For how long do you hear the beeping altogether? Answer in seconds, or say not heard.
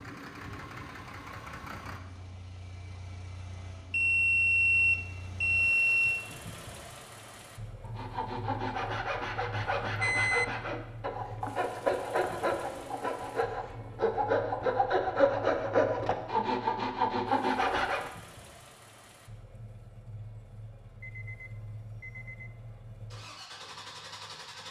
5 s.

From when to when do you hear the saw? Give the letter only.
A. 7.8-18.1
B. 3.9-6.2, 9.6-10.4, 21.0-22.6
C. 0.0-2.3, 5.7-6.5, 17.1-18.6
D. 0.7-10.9
A.